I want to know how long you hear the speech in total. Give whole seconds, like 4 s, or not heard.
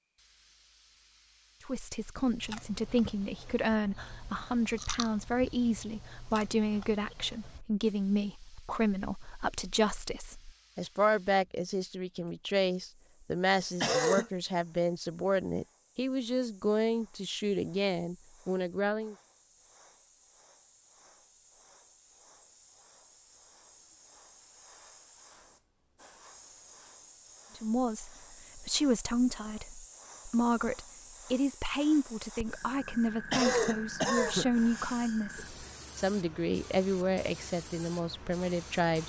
29 s.